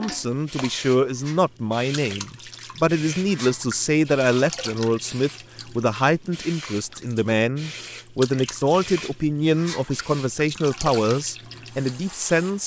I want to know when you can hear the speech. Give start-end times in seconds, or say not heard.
0.0-12.6.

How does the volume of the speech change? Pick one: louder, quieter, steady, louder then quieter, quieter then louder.
steady.